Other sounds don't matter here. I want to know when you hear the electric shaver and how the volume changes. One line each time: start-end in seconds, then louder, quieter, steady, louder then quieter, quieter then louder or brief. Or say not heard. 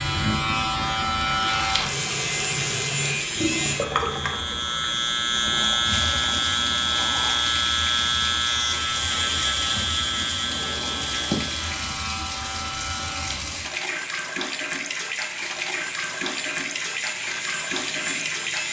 0.0-18.6 quieter.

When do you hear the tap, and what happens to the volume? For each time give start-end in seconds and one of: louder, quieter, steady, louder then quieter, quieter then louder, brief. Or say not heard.
0.0-18.6 steady.